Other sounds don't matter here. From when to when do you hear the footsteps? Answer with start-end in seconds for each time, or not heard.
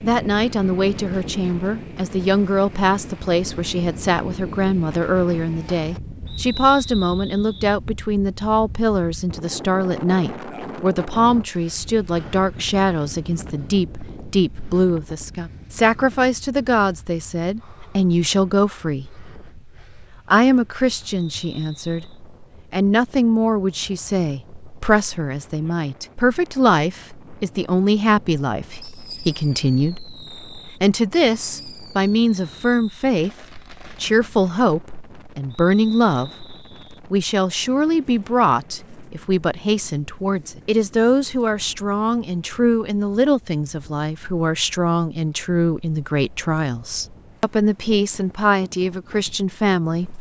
not heard.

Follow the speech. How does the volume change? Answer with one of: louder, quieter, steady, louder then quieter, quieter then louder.
steady.